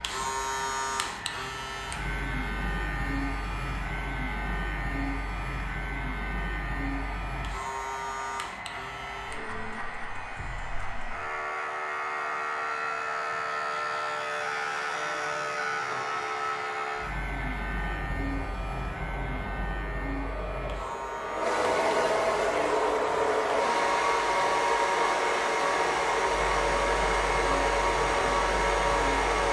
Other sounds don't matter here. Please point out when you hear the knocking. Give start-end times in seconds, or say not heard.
not heard.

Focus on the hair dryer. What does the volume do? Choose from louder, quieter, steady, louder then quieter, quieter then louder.
louder.